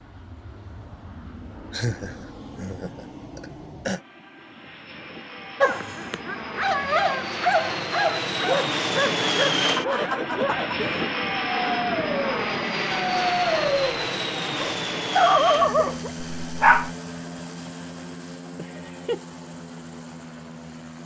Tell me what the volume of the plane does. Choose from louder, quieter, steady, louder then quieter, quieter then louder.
louder then quieter.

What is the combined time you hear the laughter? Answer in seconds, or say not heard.
4 s.